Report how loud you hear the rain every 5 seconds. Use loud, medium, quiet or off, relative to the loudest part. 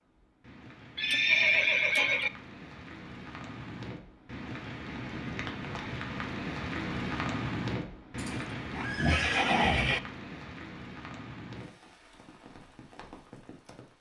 medium, loud, medium.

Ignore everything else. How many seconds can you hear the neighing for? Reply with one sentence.
You can hear the neighing for 3 seconds altogether.